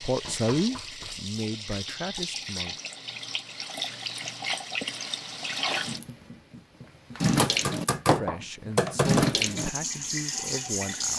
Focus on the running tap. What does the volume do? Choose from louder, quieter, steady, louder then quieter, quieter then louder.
louder.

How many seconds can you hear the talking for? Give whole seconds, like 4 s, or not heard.
6 s.